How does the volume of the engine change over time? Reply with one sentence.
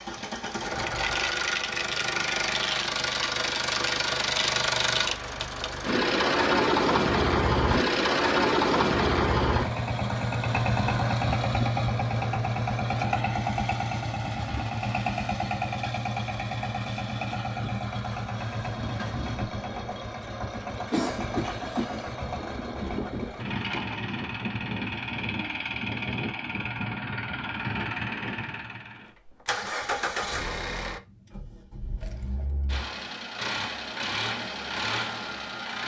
The loudness of the engine goes down.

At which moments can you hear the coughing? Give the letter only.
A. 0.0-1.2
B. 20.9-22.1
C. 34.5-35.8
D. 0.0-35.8
B.